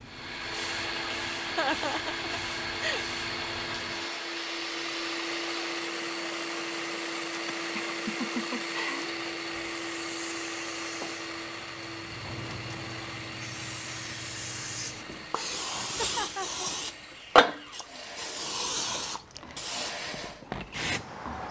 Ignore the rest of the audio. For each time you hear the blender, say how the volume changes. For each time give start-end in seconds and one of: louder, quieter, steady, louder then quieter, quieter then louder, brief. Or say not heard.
0.0-21.4 quieter.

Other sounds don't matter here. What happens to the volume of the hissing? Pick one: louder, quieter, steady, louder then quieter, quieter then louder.
louder.